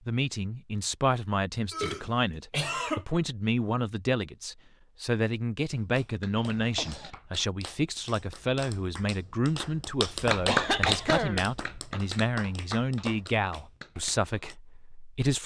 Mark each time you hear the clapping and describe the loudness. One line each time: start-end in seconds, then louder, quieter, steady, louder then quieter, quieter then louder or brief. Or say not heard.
5.8-14.6 louder then quieter.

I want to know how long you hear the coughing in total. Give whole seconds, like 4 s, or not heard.
3 s.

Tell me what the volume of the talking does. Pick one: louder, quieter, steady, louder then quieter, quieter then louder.
steady.